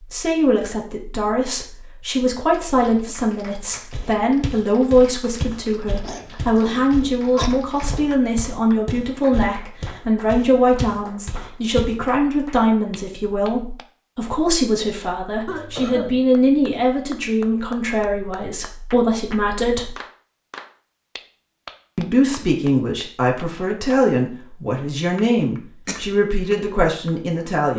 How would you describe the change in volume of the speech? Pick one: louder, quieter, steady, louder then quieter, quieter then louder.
steady.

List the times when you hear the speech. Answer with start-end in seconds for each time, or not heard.
0.1-19.9, 21.9-27.7.